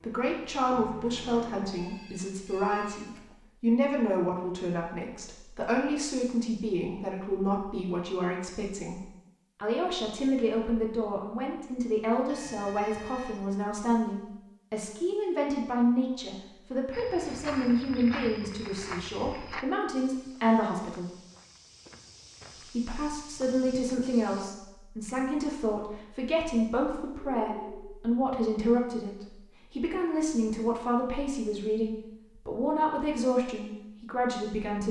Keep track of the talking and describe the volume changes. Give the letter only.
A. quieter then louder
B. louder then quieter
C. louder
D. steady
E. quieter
D.